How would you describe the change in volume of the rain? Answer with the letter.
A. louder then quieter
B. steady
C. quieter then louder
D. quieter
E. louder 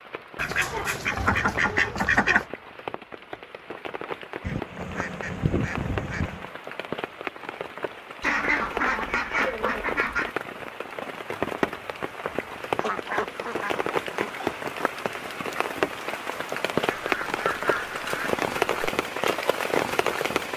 E.